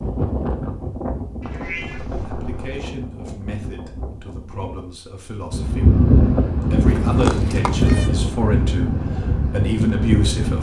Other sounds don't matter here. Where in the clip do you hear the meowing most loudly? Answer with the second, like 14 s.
7 s.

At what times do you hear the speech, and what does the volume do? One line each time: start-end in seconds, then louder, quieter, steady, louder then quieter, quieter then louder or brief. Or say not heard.
2.1-10.5 louder.